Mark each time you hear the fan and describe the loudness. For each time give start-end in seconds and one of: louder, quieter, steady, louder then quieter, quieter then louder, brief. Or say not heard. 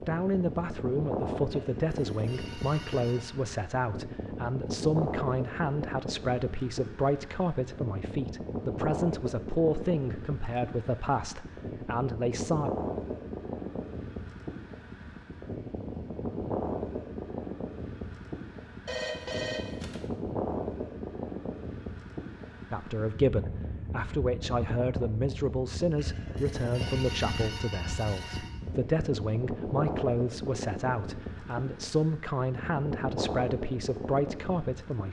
0.0-35.0 steady.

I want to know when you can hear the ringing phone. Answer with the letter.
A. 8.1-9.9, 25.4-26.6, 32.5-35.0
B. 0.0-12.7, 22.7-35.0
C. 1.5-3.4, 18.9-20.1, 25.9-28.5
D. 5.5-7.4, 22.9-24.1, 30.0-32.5
C.